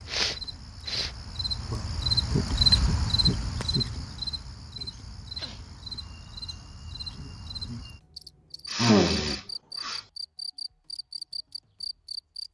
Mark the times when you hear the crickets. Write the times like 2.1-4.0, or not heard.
0.0-12.4.